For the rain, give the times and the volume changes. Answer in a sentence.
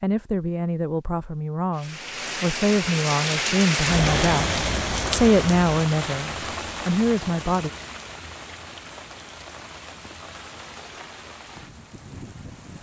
You can hear the rain from 1.8 to 12.7 s, getting quieter.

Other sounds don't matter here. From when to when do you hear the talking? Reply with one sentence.
The talking can be heard from 0.0 to 7.7 s.